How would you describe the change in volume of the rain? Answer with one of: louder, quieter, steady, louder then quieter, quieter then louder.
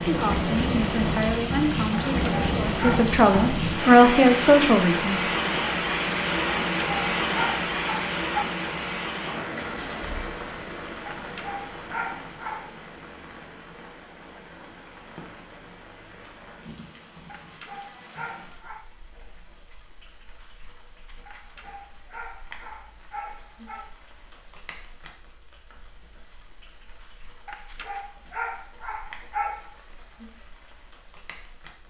quieter.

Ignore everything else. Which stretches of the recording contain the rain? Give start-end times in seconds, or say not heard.
0.0-31.8.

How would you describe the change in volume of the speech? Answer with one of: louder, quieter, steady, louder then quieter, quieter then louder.
louder.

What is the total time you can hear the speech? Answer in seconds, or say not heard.
5 s.